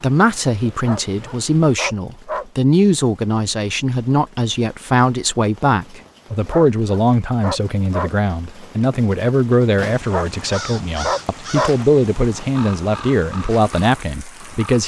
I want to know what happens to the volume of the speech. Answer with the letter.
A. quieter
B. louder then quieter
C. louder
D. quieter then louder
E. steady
E.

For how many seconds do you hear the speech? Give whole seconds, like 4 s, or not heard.
15 s.